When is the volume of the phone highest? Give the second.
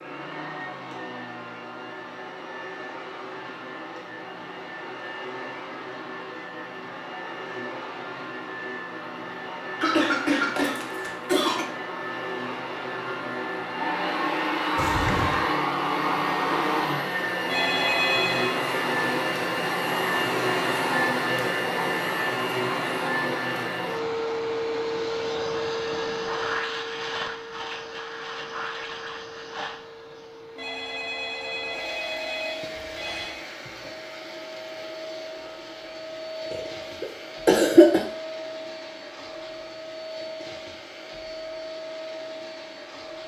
18 s.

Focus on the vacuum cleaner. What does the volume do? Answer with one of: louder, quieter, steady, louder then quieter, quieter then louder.
louder then quieter.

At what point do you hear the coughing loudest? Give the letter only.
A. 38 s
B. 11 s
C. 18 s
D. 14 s
A.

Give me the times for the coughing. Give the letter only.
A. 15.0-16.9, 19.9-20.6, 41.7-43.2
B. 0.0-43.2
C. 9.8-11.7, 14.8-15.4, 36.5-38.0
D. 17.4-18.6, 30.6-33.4
C.